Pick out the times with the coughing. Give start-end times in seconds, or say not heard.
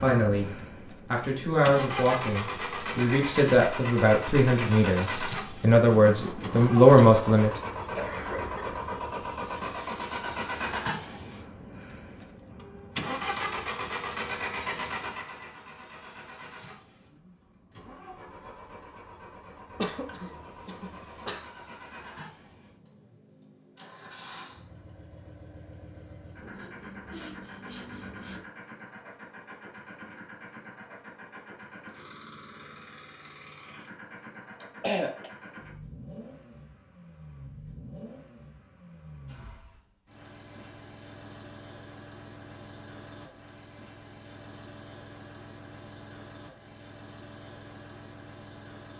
8.0-8.8, 19.8-21.4, 34.6-35.3.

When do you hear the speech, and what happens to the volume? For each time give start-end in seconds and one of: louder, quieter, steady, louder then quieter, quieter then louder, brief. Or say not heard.
0.0-7.6 louder.